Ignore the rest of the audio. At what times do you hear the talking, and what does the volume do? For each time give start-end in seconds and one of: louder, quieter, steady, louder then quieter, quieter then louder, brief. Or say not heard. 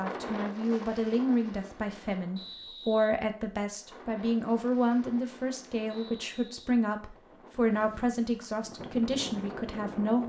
0.0-10.2 steady.